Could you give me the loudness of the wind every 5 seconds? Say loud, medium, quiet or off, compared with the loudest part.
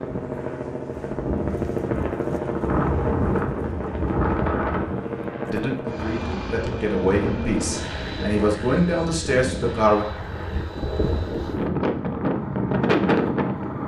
loud, medium, loud.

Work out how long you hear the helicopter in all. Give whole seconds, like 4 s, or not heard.
14 s.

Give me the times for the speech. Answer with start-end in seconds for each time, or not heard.
5.5-10.1.